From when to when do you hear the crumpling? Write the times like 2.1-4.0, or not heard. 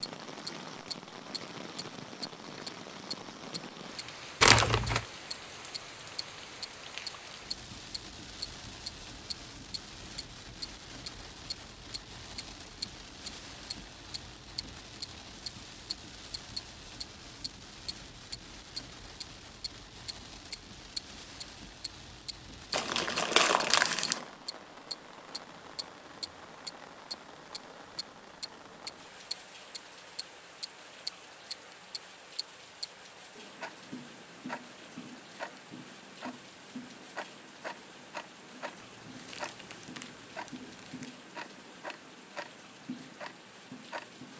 4.4-5.0, 22.7-24.2, 38.8-41.1.